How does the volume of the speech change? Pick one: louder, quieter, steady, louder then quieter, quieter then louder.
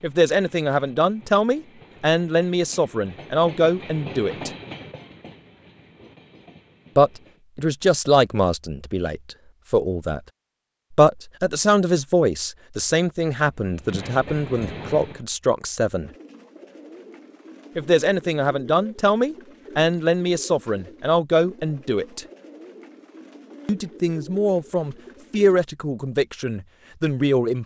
steady.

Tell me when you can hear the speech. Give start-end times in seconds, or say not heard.
0.0-4.5, 7.0-10.2, 10.9-16.1, 17.8-22.2, 23.6-27.6.